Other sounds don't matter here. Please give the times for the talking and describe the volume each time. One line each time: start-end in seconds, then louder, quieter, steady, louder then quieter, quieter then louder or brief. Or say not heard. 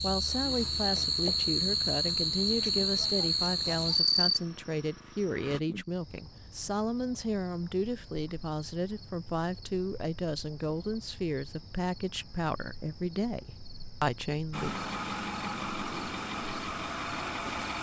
0.0-14.8 steady.